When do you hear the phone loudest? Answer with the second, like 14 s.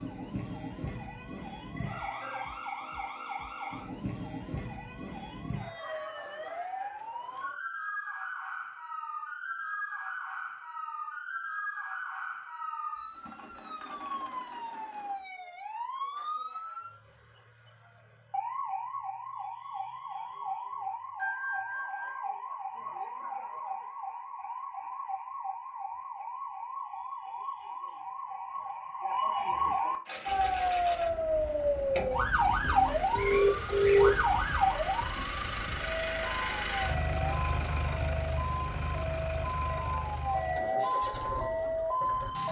34 s.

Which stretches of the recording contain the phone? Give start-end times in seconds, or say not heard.
1.8-2.6, 21.1-22.2, 33.1-34.1.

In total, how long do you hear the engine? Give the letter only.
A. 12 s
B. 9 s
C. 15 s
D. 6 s
A.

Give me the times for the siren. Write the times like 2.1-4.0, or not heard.
0.0-42.4.